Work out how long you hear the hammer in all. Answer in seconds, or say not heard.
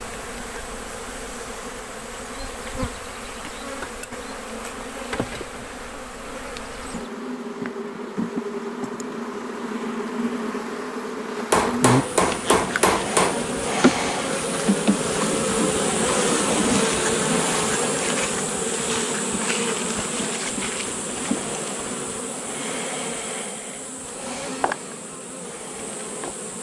2 s.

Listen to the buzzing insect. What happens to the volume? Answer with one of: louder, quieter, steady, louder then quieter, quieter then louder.
louder then quieter.